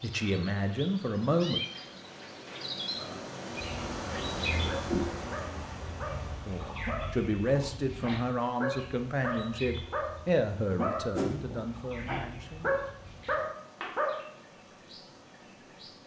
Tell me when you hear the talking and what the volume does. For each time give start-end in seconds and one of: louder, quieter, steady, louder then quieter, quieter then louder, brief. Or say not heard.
0.0-1.6 brief
6.5-12.7 quieter.